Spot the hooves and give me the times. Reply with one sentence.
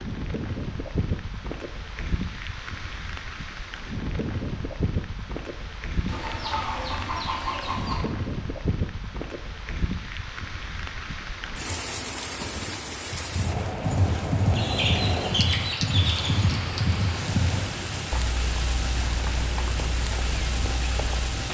You can hear the hooves from 13.3 to 21.4 s.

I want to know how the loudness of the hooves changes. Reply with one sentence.
The volume of the hooves goes down.